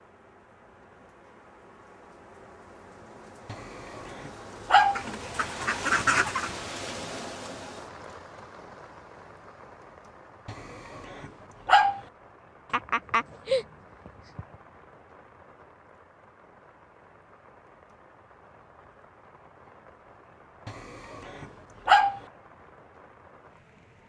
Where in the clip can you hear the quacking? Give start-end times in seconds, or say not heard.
5.0-6.5, 12.7-14.6.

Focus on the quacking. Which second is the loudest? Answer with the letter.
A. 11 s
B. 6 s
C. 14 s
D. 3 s
B.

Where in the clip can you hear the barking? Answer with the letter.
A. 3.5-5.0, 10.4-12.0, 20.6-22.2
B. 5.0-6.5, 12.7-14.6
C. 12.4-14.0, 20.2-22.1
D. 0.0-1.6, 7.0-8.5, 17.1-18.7
A.